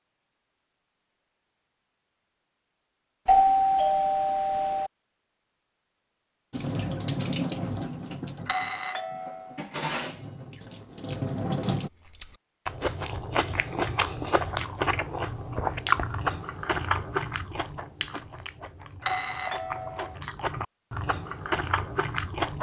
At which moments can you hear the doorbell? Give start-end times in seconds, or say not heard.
3.2-4.9, 8.4-9.6, 19.0-20.1.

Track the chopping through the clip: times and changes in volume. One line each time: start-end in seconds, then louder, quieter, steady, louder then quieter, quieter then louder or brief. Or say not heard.
not heard.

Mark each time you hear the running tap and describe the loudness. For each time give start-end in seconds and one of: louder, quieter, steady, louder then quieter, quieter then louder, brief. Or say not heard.
6.5-11.9 quieter then louder.